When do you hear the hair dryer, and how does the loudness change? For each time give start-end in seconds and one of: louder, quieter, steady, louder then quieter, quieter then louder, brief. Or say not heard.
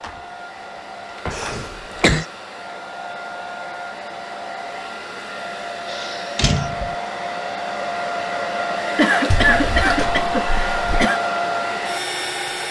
0.0-12.6 louder.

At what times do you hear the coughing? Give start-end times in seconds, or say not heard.
1.3-2.2, 5.8-6.5, 8.9-11.2.